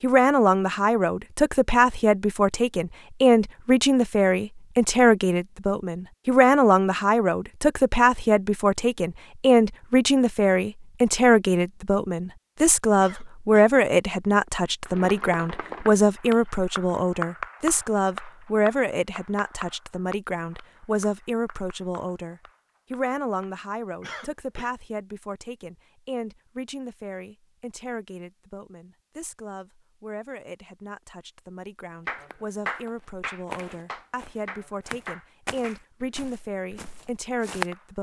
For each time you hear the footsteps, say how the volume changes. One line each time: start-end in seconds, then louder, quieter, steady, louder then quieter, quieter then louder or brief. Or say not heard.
32.1-37.6 louder then quieter.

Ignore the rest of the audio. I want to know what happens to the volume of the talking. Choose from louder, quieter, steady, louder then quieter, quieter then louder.
quieter.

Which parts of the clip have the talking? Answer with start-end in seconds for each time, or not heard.
0.0-37.9.